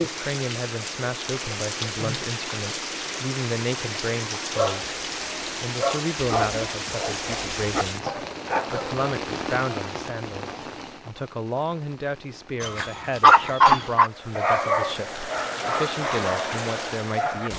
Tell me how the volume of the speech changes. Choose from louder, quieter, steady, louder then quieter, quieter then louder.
steady.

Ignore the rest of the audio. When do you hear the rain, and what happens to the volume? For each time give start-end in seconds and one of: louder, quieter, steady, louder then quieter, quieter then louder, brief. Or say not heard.
0.0-17.5 quieter then louder.